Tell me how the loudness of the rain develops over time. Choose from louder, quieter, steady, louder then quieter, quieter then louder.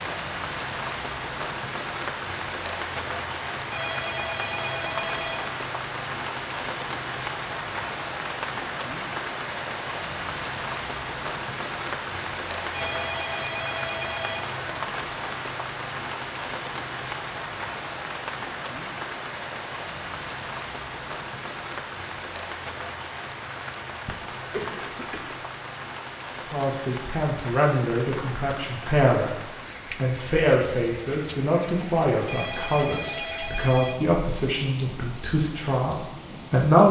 quieter.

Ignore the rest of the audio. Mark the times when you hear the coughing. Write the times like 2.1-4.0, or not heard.
24.1-25.4.